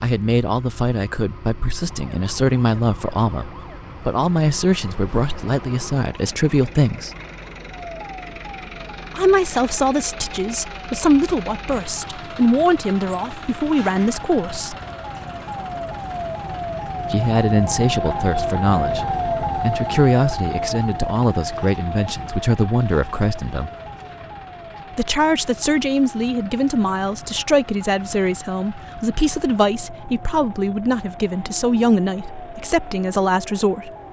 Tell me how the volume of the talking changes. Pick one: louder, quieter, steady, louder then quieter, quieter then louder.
steady.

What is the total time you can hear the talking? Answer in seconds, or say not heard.
28 s.